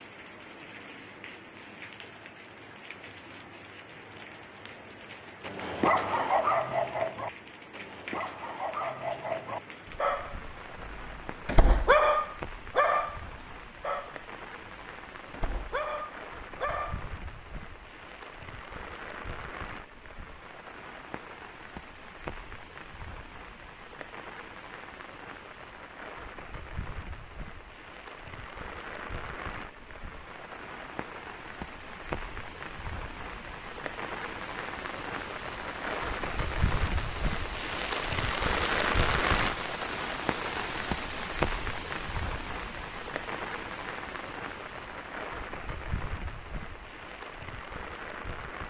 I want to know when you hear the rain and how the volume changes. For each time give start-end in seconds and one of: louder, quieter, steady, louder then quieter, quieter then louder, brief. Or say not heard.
0.0-48.6 louder.